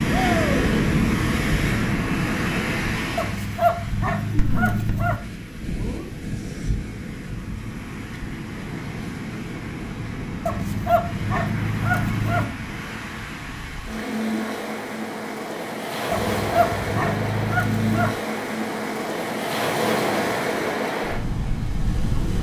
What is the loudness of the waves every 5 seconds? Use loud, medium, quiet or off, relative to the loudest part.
loud, medium, medium, loud, loud.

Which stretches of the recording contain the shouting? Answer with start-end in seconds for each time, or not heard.
0.1-0.7.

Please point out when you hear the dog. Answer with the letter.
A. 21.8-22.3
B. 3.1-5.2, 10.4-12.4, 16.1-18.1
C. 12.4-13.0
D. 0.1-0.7
B.